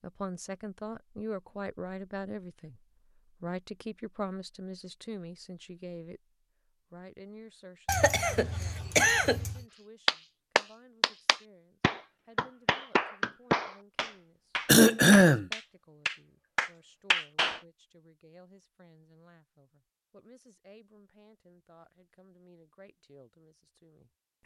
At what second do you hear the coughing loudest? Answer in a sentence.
The volume of the coughing peaks at 15 seconds.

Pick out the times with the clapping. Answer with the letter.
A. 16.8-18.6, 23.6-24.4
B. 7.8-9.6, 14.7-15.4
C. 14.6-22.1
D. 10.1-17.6
D.